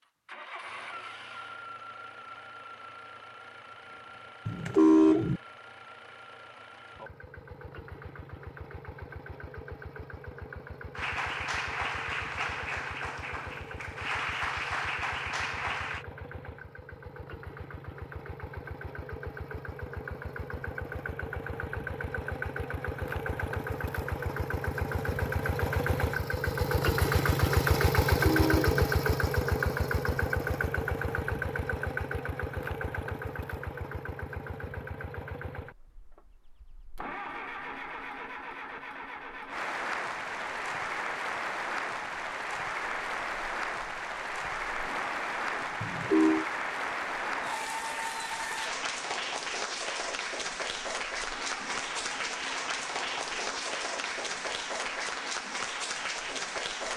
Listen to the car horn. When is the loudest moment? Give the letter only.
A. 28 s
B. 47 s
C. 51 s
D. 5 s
D.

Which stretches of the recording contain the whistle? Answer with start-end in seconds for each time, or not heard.
not heard.